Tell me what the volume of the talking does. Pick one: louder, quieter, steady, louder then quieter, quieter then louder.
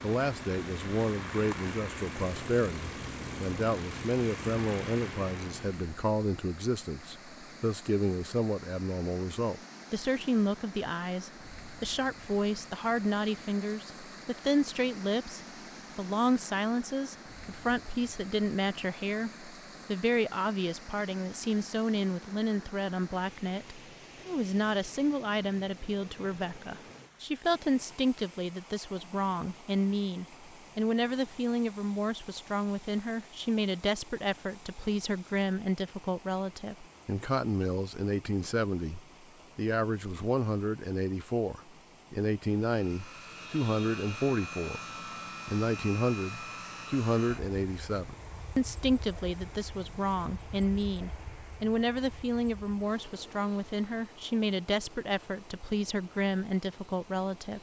steady.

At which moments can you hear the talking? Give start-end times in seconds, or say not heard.
0.0-44.8, 45.5-57.5.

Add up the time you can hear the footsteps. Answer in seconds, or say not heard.
not heard.